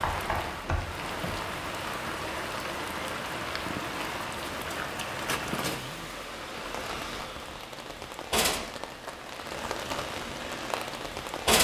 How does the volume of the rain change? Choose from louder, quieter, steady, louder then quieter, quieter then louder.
steady.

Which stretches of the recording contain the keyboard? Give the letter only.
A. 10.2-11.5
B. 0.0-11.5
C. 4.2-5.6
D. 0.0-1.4
D.